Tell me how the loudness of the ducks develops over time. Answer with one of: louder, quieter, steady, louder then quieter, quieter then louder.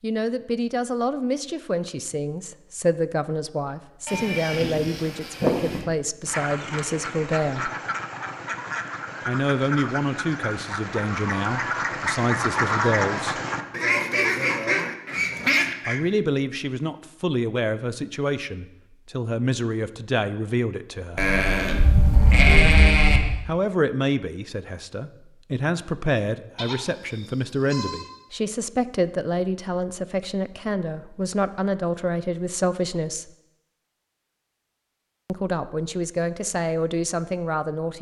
louder.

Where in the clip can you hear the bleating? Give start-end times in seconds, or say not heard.
4.0-5.8, 21.1-23.2, 26.6-28.1.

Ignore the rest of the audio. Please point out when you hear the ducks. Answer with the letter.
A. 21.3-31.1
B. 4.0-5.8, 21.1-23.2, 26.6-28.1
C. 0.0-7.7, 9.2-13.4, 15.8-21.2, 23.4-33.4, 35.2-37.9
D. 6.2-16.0
D.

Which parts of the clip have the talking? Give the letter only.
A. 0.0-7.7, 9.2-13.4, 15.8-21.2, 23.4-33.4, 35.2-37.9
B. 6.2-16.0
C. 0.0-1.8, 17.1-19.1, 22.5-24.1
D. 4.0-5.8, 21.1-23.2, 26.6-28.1
A.